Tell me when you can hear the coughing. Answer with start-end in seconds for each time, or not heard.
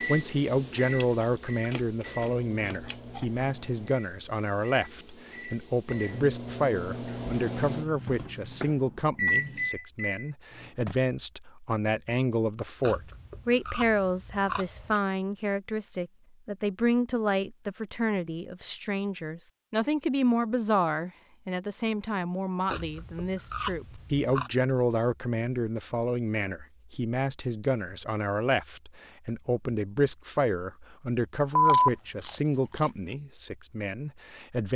not heard.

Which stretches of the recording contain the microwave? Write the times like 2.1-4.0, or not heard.
0.0-10.9.